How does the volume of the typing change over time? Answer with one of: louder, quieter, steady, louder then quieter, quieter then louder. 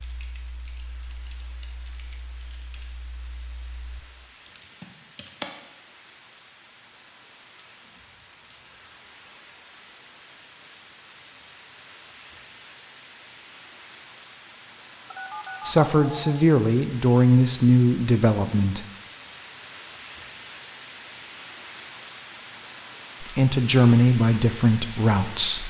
quieter then louder.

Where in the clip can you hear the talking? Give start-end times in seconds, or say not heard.
15.6-18.9, 23.2-25.6.